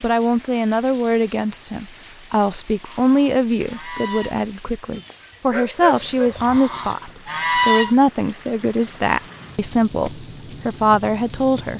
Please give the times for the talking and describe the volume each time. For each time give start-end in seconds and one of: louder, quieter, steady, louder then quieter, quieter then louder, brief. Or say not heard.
0.0-11.7 steady.